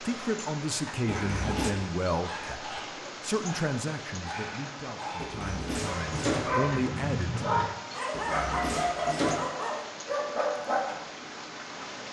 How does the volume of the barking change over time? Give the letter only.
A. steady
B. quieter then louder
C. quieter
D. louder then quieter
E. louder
E.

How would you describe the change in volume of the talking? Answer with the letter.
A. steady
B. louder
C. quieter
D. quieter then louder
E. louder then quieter
D.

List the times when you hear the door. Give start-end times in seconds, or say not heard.
1.1-1.8, 5.2-6.6, 8.1-9.5.